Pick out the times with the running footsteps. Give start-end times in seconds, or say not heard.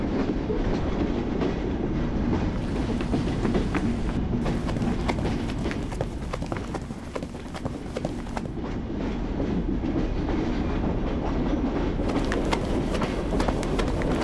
2.5-8.6, 12.0-14.1.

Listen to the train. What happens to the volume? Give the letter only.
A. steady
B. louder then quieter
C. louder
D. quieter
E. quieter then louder
E.